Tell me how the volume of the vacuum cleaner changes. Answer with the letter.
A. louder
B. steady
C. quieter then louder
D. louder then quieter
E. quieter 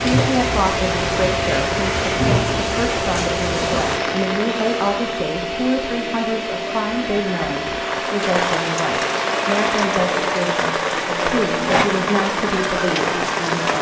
B.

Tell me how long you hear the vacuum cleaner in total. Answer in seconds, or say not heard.
14 s.